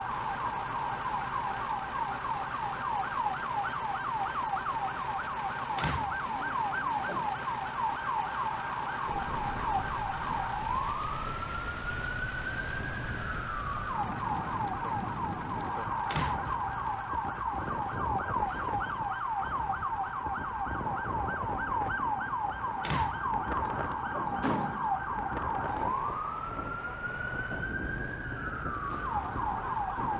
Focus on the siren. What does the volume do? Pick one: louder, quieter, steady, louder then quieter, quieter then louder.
steady.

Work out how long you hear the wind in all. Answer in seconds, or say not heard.
21 s.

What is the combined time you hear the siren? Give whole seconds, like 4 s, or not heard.
30 s.